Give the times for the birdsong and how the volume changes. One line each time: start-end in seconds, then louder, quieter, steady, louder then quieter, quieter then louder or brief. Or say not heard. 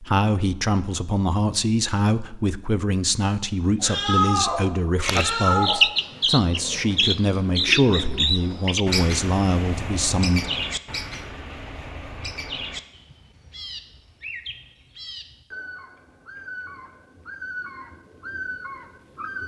5.0-19.4 quieter.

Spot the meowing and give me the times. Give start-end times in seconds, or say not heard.
3.8-5.8.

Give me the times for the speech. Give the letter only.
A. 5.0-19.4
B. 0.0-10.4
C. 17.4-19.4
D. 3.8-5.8
B.